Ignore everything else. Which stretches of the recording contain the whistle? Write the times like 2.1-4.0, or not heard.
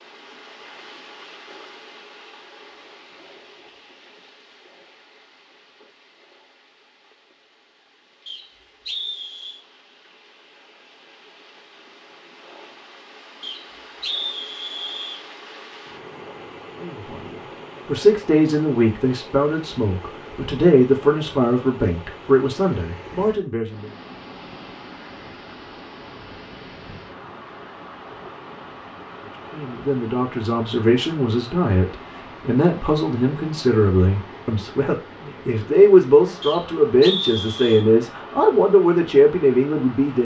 8.2-9.6, 13.4-15.2, 36.4-37.9.